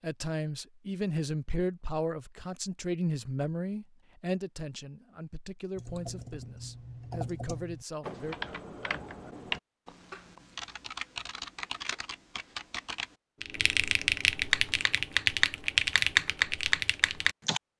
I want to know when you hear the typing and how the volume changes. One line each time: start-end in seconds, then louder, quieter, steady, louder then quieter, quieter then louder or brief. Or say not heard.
5.8-17.6 louder.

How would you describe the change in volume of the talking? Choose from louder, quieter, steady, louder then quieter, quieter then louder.
quieter.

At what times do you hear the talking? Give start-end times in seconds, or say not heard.
0.0-8.3.